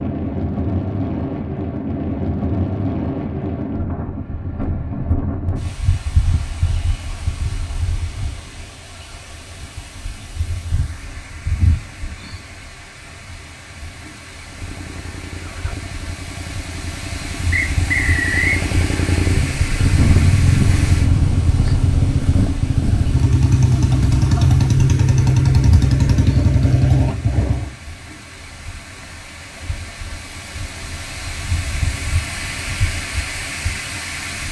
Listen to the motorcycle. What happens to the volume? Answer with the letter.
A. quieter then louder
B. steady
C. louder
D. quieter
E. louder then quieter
C.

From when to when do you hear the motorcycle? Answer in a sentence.
You can hear the motorcycle from 14.4 to 27.8 s.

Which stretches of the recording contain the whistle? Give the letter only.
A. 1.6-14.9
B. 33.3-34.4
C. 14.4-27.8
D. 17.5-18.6
D.